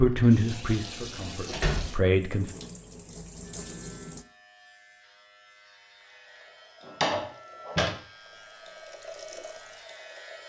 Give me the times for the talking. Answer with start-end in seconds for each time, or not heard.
0.0-2.5.